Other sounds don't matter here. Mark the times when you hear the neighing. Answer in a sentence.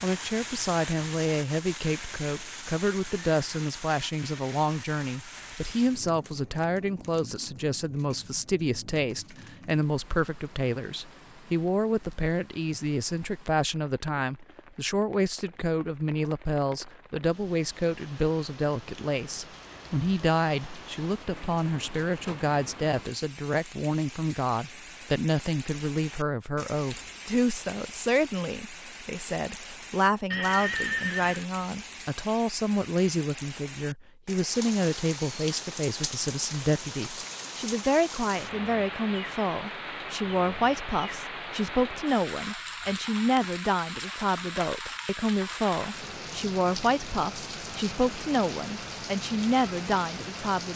The neighing can be heard from 30.3 to 31.4 s.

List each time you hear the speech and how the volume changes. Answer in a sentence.
You can hear the speech from 0.0 to 50.7 s, at a steady volume.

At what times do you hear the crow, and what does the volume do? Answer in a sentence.
The crow can't be heard in this clip.